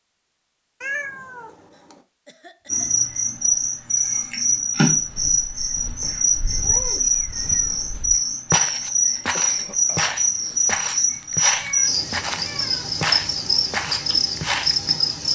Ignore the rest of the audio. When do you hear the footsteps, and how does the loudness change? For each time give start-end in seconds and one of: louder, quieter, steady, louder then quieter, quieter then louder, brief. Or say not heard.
5.0-14.8 louder.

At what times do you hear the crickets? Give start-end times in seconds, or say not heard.
2.6-15.2.